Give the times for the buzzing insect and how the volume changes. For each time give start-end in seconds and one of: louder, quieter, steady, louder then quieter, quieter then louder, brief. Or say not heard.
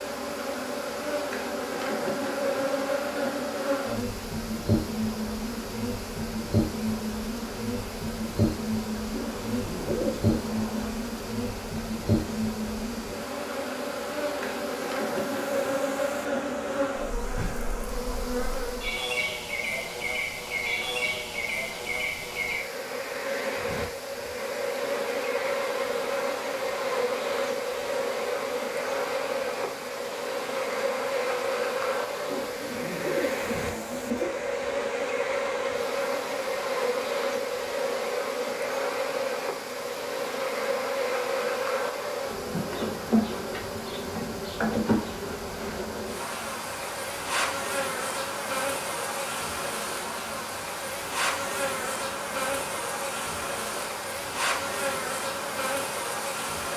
0.0-56.7 steady.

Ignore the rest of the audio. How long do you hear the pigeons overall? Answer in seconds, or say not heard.
4 s.